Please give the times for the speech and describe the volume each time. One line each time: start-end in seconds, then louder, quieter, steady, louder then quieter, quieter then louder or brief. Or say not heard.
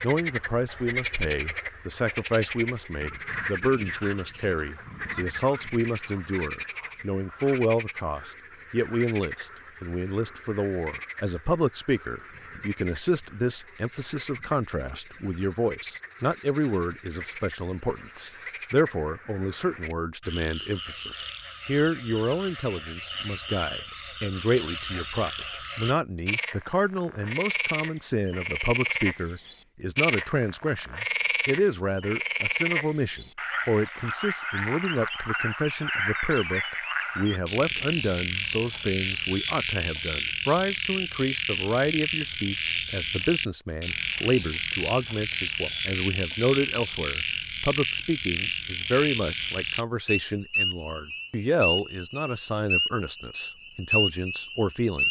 0.0-55.0 steady.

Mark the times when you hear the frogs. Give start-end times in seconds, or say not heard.
0.0-55.0.